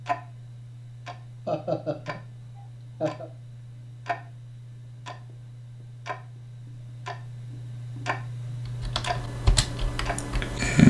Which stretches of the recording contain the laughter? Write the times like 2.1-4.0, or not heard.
1.4-3.3.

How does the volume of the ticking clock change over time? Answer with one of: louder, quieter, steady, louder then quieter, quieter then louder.
louder.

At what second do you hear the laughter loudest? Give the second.
2 s.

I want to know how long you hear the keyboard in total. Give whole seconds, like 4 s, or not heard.
2 s.